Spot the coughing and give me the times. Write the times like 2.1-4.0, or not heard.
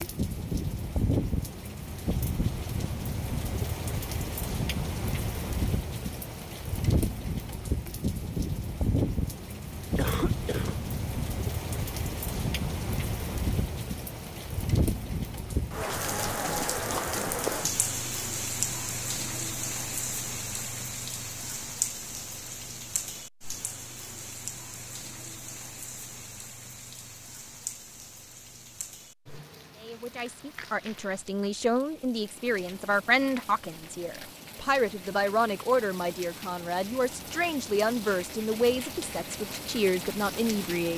9.9-10.8.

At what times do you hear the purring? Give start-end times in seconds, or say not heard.
not heard.